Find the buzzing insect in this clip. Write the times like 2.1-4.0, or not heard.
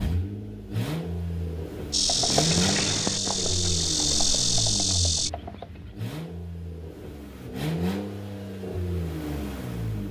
1.9-5.3.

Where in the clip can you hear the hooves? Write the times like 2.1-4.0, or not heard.
2.0-6.0.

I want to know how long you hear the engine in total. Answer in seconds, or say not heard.
10 s.